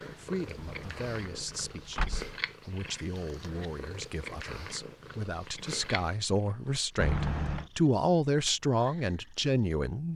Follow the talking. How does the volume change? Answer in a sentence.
The volume of the talking goes up.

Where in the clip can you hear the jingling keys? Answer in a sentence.
The jingling keys can be heard from 0.6 to 2.4 s and from 7.0 to 7.7 s.